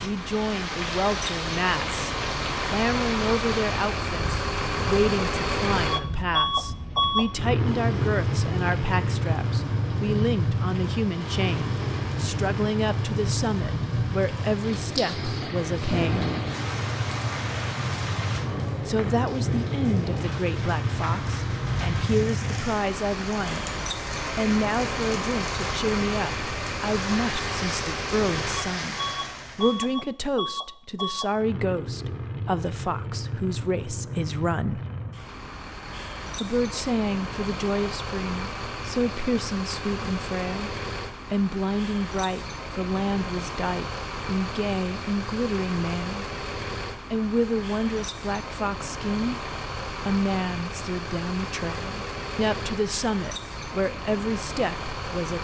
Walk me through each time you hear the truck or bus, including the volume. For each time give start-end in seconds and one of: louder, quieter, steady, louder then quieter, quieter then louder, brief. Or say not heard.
0.0-55.3 quieter.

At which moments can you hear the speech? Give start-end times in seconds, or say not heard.
0.0-16.3, 18.9-23.7, 24.4-34.8, 36.4-46.3, 47.1-55.3.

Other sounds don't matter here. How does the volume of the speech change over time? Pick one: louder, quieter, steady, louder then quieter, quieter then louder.
steady.